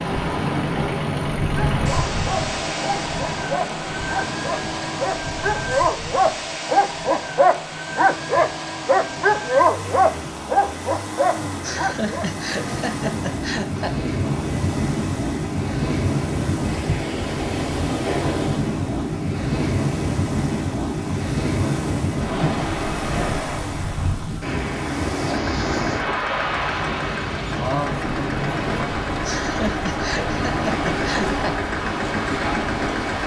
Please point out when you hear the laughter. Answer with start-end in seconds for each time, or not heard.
11.6-13.9, 29.2-31.6.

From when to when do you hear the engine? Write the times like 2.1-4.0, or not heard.
0.0-33.2.